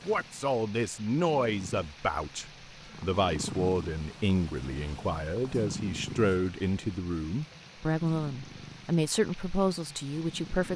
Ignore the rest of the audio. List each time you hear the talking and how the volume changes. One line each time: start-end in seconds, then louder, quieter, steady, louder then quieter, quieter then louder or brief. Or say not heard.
0.0-10.7 steady.